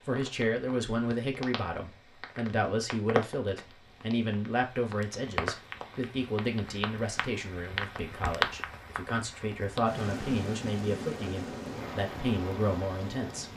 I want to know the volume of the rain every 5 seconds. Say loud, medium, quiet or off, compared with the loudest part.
medium, loud, loud.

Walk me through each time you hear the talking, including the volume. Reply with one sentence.
The talking can be heard from 0.1 to 13.5 s, at a steady volume.